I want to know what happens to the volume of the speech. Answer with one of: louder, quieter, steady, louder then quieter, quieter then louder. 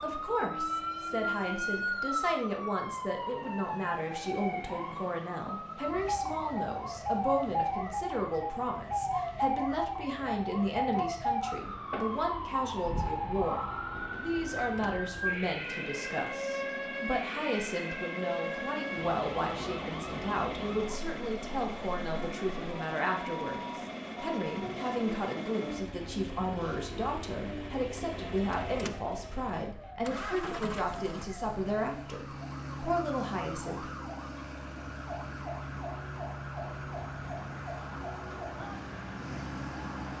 steady.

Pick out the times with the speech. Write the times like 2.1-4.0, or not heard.
0.0-33.9.